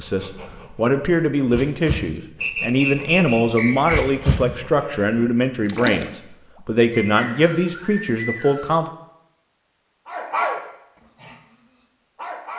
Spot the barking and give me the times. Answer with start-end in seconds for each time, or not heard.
0.0-5.2, 10.1-10.6, 11.2-12.5.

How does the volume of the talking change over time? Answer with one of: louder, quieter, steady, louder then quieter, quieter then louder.
steady.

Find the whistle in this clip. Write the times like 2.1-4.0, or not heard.
2.4-4.0, 6.9-8.8.